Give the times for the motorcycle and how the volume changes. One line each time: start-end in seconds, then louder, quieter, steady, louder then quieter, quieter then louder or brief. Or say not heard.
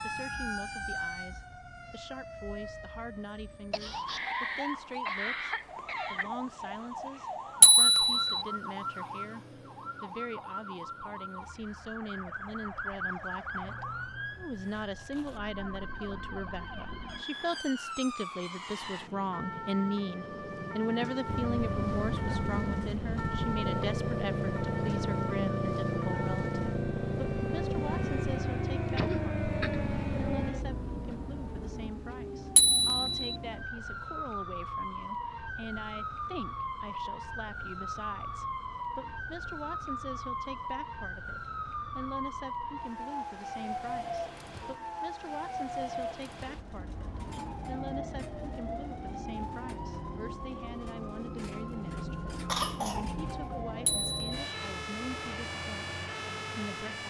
21.2-30.6 steady.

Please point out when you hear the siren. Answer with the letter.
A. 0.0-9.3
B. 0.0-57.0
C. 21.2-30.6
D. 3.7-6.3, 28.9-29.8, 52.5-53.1
B.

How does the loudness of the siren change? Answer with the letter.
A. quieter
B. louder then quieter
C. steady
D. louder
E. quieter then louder
C.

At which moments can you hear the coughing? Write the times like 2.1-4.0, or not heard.
3.7-6.3, 28.9-29.8, 52.5-53.1.